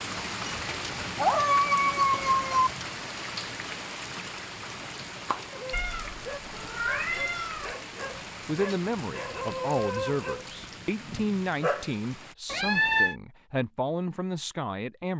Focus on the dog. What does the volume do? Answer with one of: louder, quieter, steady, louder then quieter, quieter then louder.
louder then quieter.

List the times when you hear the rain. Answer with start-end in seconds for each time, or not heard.
0.0-12.3.